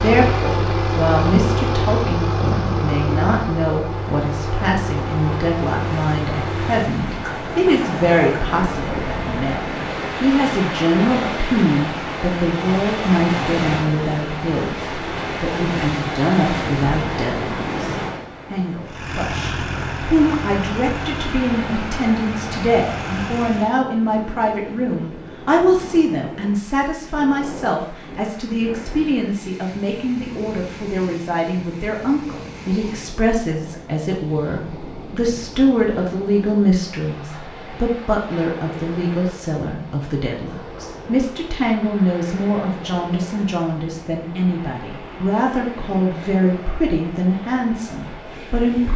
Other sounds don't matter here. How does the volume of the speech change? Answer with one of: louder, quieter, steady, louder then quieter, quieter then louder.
steady.